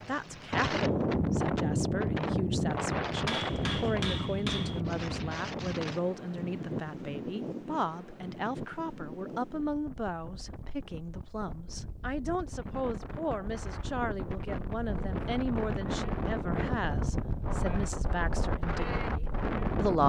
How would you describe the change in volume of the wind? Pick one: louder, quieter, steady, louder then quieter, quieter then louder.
quieter then louder.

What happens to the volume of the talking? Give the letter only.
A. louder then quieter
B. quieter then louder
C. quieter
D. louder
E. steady
E.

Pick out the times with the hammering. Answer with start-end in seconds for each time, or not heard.
3.2-4.8.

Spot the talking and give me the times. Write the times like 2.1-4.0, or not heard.
0.1-20.0.